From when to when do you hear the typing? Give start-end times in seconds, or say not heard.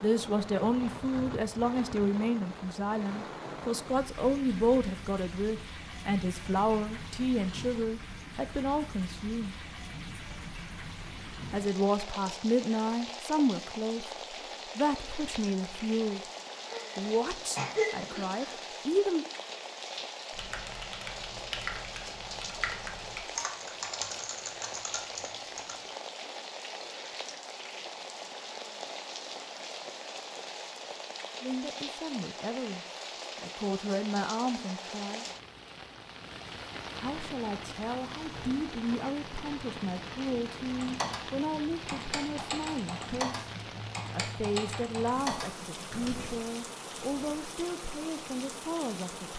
20.3-25.8, 40.8-46.4.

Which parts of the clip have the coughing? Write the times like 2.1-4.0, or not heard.
16.7-18.6.